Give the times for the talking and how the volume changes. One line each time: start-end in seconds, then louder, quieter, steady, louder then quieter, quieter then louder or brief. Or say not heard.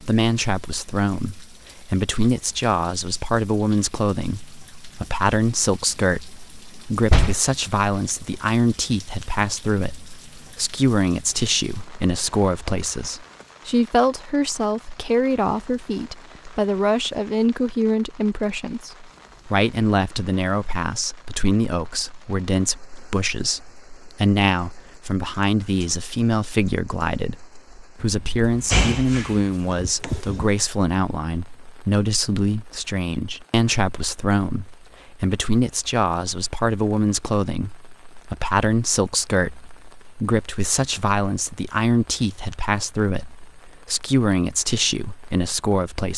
0.0-46.1 steady.